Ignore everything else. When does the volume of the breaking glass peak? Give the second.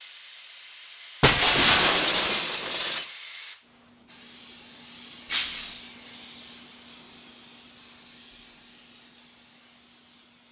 2 s.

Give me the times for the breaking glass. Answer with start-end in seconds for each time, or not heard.
1.2-3.1, 5.2-5.8.